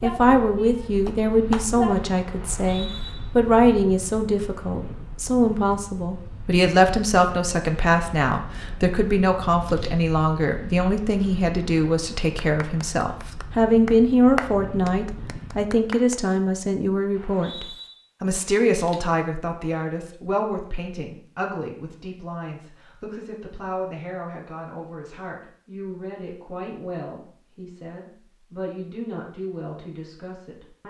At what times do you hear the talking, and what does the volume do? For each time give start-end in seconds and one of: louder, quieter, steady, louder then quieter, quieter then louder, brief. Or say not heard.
0.0-30.8 quieter.